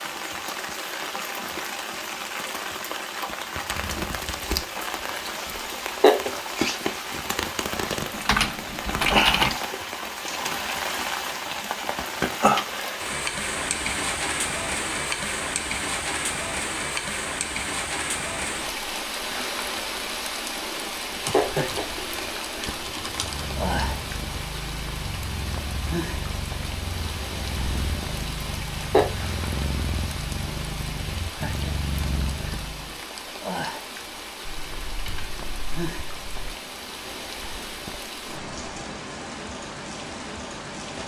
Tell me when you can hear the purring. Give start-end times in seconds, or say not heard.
23.1-33.0.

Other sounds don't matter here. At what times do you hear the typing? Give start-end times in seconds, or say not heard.
8.1-9.6, 21.2-23.4, 34.4-36.5.